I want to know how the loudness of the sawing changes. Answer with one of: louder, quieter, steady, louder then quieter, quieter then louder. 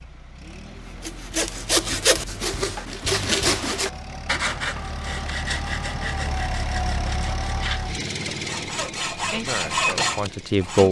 quieter then louder.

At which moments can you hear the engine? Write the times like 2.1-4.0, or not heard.
0.0-10.8.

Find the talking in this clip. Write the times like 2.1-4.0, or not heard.
9.2-10.8.